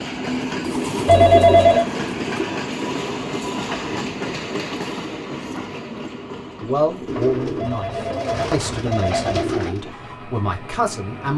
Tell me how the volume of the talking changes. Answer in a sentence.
The loudness of the talking goes down, then up.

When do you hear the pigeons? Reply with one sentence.
The pigeons can be heard from 0.6 to 2.5 s and from 7.0 to 9.8 s.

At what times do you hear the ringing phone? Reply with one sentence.
The ringing phone can be heard from 1.1 to 1.9 s and from 7.5 to 9.5 s.